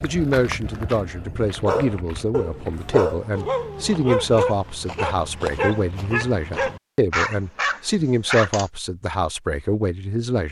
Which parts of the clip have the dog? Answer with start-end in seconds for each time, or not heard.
1.6-8.7.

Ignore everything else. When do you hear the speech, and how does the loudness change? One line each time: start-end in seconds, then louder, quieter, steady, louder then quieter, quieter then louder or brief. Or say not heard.
0.0-10.4 steady.